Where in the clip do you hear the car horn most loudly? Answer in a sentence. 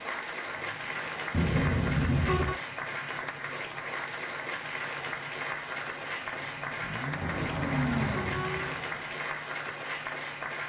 The volume of the car horn peaks at 2 seconds.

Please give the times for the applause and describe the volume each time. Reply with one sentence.
You can hear the applause from 0.0 to 10.6 s, at a steady volume.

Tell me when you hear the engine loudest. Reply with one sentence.
The volume of the engine peaks at 8 seconds.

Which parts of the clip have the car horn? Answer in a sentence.
The car horn can be heard from 1.3 to 2.5 s and from 7.2 to 8.8 s.